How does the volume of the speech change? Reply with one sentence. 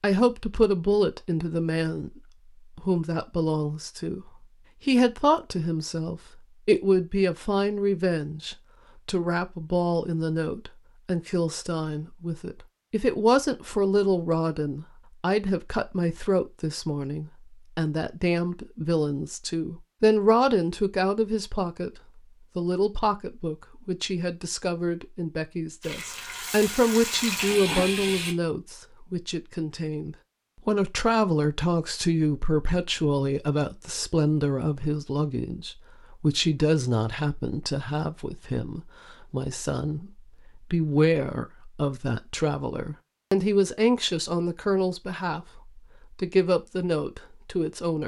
The volume of the speech stays about the same.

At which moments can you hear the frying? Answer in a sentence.
You can hear the frying from 25.8 to 28.4 s.